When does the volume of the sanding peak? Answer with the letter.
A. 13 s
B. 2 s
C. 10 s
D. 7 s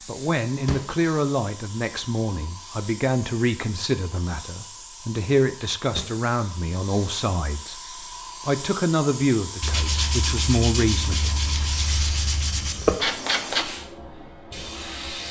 A.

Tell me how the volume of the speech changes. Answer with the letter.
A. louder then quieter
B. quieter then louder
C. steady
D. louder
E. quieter
C.